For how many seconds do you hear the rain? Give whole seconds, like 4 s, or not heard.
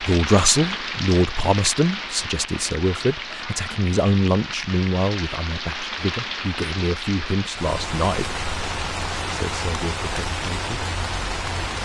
12 s.